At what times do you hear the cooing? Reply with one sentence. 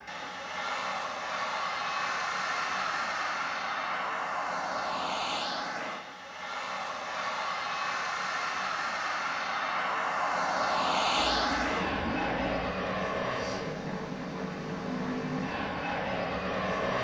You can hear the cooing from 11.2 to 12.7 s.